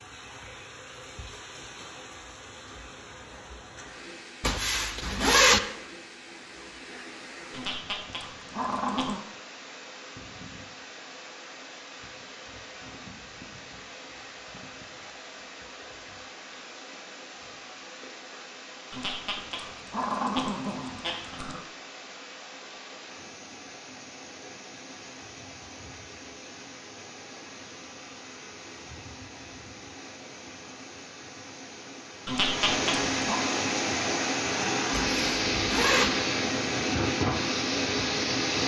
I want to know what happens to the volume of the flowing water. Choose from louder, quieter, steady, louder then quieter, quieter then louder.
louder.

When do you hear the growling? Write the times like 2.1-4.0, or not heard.
7.5-9.2, 18.9-21.6, 32.2-33.4.